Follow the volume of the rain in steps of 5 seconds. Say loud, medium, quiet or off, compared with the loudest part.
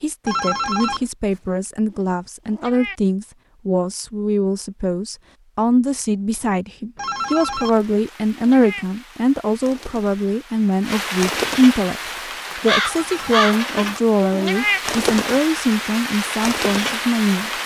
off, quiet, loud, loud.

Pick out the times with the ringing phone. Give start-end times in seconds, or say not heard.
0.2-1.1, 7.0-7.8, 12.8-13.3.